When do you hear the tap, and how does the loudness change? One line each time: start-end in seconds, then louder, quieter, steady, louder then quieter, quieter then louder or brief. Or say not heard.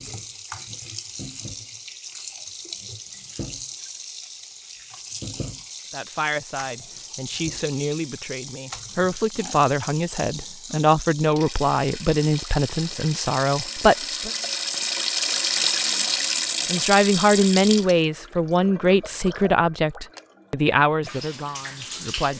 0.0-22.3 louder then quieter.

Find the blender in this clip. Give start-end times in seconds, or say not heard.
not heard.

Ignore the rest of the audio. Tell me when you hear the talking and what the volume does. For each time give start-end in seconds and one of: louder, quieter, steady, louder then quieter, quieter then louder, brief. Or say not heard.
5.9-14.3 louder
16.7-22.3 quieter.